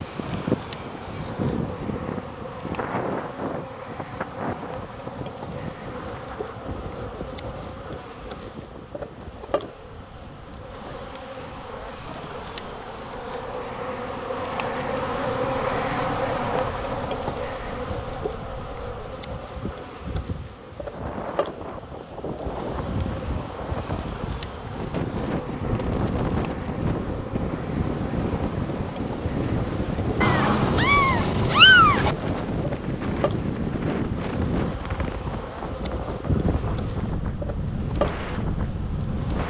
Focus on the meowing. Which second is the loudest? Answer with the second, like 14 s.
32 s.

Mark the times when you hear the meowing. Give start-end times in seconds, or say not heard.
30.2-32.1.